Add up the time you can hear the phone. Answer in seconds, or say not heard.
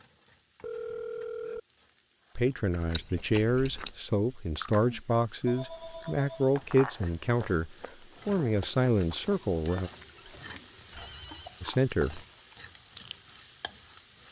4 s.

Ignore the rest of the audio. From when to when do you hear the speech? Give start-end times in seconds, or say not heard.
2.4-9.9, 11.6-12.2.